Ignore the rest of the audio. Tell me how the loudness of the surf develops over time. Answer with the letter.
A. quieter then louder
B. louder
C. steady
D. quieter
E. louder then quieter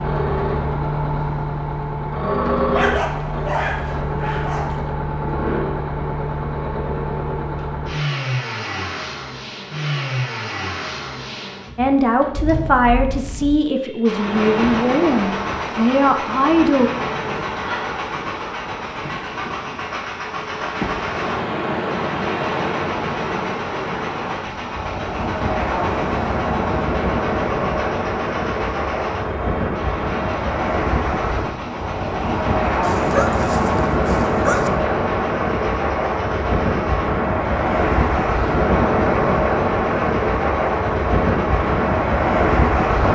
B.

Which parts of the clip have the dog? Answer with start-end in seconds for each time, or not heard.
2.7-4.8, 32.8-34.7.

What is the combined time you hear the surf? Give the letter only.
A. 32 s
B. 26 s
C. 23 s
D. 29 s
D.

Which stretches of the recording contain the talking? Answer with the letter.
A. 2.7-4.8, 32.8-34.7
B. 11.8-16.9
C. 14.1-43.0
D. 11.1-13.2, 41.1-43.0
B.